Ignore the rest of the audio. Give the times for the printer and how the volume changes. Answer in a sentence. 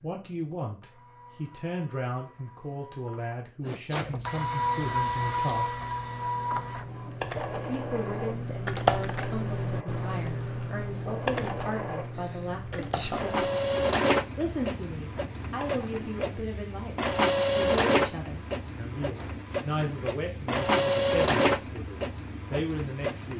You can hear the printer from 0.0 to 23.3 s, getting louder.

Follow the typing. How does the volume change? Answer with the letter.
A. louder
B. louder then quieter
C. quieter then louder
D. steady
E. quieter
B.